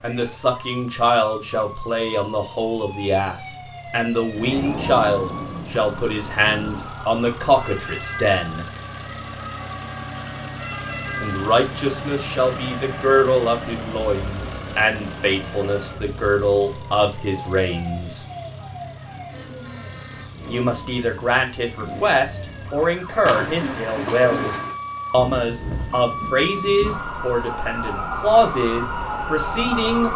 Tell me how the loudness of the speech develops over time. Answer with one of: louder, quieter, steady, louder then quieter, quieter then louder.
steady.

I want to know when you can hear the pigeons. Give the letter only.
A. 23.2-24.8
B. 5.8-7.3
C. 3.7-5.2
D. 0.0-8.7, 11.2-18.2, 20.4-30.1
A.